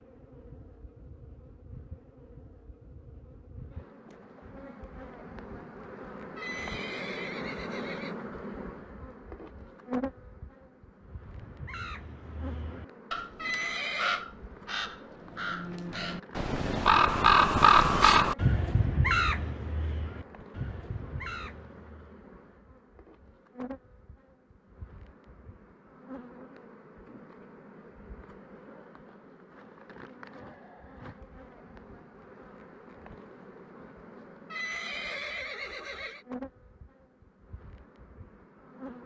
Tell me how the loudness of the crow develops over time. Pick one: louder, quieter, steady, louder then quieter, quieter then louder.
louder then quieter.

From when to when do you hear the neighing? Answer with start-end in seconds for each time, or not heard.
6.3-8.2, 13.3-14.2, 34.5-36.2.